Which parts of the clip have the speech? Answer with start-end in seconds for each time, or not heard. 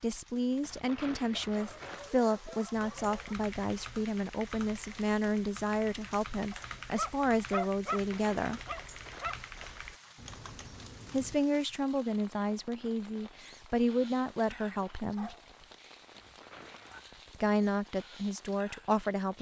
0.0-8.6, 11.1-15.3, 17.4-19.3.